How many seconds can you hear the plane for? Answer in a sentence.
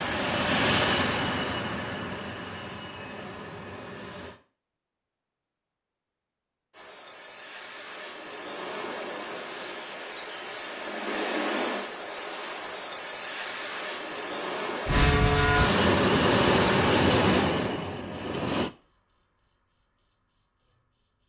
You can hear the plane for 8 seconds altogether.